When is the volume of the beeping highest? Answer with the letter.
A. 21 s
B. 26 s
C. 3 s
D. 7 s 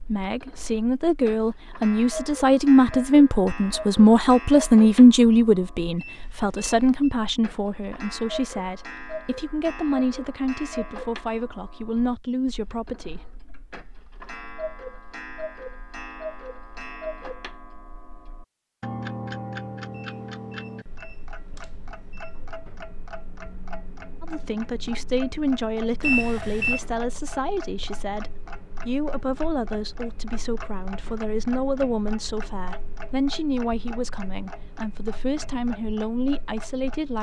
B.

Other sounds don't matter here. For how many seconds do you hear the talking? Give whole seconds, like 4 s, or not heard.
26 s.